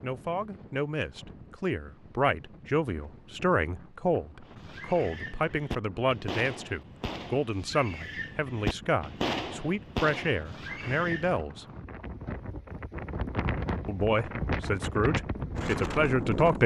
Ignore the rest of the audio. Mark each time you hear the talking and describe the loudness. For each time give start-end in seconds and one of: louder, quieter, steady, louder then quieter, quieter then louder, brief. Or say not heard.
0.0-11.7 steady
13.8-16.6 brief.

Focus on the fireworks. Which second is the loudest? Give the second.
9 s.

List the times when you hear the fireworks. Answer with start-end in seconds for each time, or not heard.
4.5-11.4.